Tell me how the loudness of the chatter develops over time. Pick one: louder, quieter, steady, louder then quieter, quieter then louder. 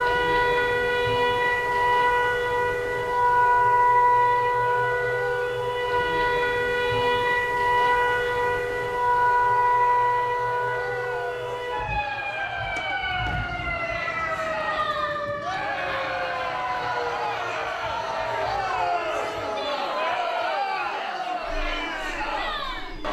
louder.